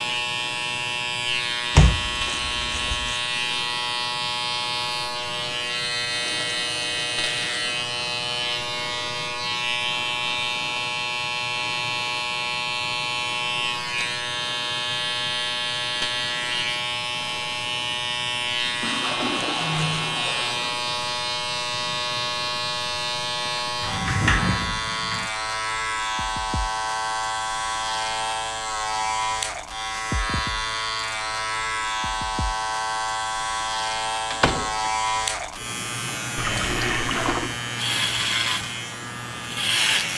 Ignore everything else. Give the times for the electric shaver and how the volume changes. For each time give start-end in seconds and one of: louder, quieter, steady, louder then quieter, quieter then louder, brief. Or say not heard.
0.0-40.1 steady.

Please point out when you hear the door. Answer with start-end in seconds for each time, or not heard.
1.8-3.1, 23.8-25.3, 34.3-34.9.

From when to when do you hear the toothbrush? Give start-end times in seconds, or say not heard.
not heard.